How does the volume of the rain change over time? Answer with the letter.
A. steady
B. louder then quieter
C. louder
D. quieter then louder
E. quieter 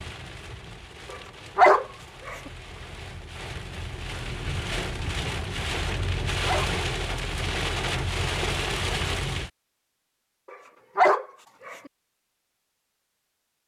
C.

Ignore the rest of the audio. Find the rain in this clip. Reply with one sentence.
The rain can be heard from 0.0 to 9.5 s.